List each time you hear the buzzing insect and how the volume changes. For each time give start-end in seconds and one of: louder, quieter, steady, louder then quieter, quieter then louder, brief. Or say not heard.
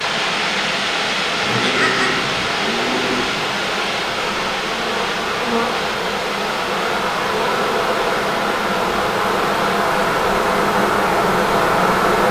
0.0-12.2 louder.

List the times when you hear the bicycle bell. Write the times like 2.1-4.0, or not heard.
not heard.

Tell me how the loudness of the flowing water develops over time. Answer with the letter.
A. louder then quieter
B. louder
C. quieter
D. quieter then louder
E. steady
C.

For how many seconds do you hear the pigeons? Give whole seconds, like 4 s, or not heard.
2 s.